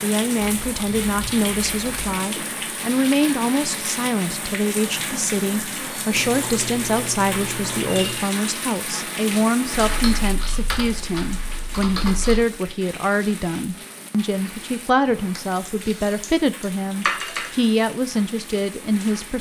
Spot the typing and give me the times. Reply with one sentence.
The typing can be heard from 0.3 to 2.1 s, from 6.2 to 8.2 s, from 9.7 to 12.4 s and from 15.7 to 17.5 s.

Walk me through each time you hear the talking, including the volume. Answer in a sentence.
You can hear the talking from 0.0 to 19.3 s, at a steady volume.